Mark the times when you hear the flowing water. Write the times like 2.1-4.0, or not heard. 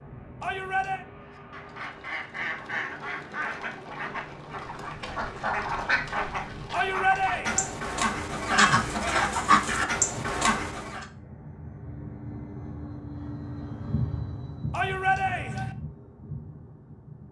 not heard.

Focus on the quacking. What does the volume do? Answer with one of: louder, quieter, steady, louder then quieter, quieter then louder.
louder.